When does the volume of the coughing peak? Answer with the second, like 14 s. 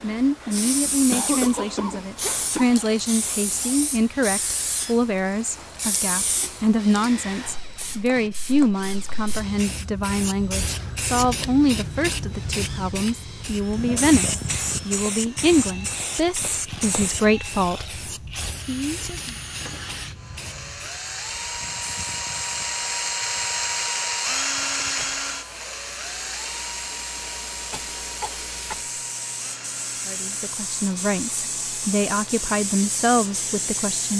1 s.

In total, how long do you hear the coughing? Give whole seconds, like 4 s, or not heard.
4 s.